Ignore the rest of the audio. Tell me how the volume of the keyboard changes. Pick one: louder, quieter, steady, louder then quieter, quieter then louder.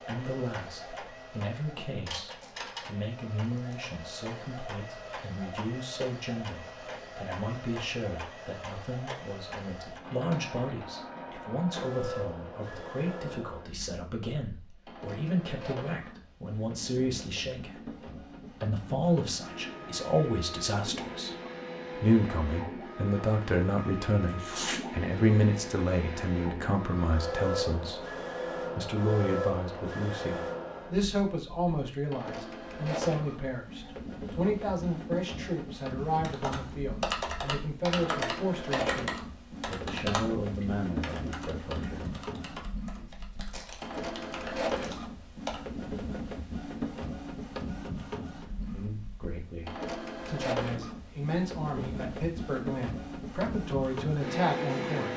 quieter.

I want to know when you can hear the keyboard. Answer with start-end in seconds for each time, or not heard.
36.2-45.6.